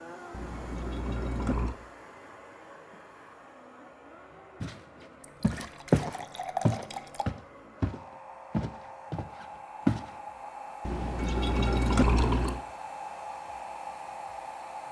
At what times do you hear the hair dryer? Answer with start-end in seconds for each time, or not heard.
0.0-14.8.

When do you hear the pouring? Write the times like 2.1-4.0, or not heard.
0.3-1.8, 5.2-7.2, 10.8-12.6.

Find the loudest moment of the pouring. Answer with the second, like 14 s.
12 s.